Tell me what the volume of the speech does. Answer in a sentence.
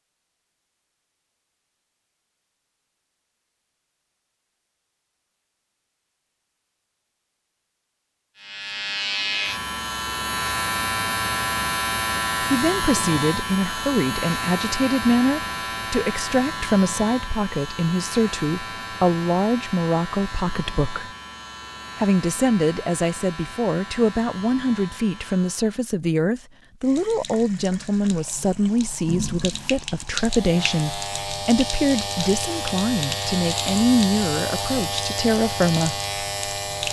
The loudness of the speech stays about the same.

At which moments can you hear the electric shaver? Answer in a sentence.
You can hear the electric shaver from 8.3 to 25.9 s and from 30.1 to 36.8 s.